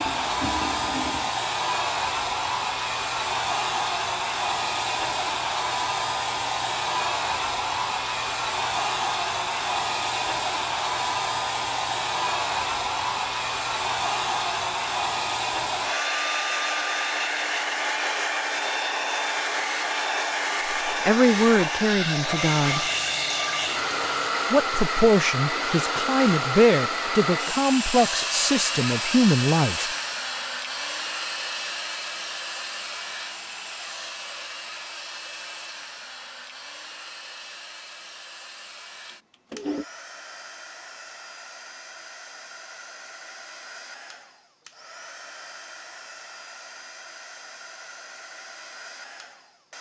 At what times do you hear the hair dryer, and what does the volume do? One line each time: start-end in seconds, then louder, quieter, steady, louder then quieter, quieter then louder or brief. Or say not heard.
0.0-49.7 quieter.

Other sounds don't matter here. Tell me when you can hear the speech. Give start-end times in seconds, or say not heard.
20.9-22.9, 24.5-29.9.